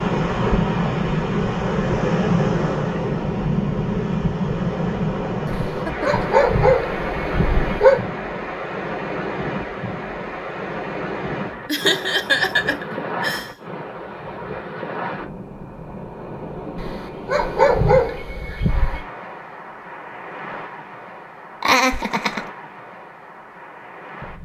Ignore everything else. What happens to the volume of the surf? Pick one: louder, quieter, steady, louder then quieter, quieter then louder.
quieter.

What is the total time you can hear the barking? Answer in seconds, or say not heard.
5 s.